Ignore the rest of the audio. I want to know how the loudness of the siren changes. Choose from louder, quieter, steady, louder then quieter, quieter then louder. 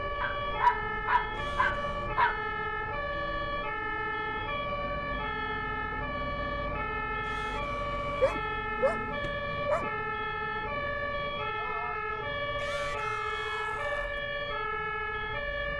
steady.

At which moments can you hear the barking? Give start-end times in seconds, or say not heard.
0.2-2.4, 8.2-9.9.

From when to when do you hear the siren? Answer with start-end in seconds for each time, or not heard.
0.0-15.7.